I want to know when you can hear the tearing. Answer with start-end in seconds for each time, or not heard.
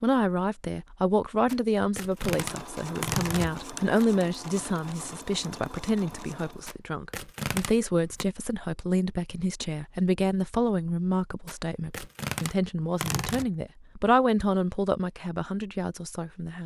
1.4-4.0, 6.7-8.2, 11.4-13.5.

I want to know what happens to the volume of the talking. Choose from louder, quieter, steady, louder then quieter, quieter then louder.
steady.